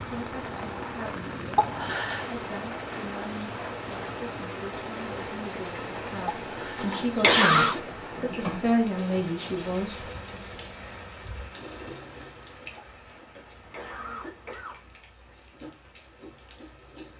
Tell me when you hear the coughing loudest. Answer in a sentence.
The volume of the coughing peaks at 7 seconds.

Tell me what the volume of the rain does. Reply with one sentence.
The loudness of the rain goes down.